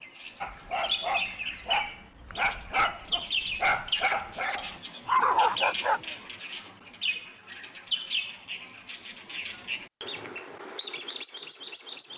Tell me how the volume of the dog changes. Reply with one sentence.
The volume of the dog goes up.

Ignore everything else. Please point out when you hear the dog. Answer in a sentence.
The dog can be heard from 0.4 to 6.0 s.